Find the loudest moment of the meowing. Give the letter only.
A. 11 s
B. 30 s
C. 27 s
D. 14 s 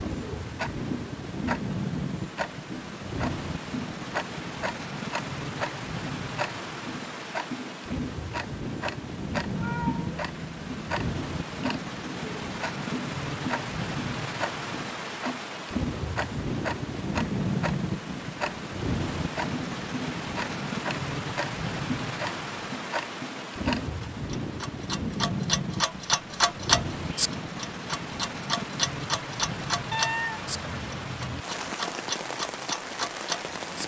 B.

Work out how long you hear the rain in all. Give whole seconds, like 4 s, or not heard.
34 s.